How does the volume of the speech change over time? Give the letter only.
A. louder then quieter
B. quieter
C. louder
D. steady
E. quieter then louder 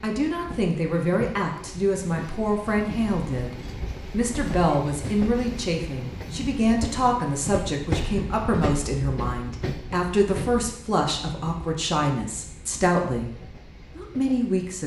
D.